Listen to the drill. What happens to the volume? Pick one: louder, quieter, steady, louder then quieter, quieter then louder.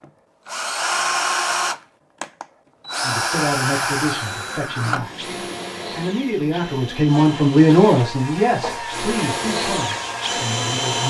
quieter then louder.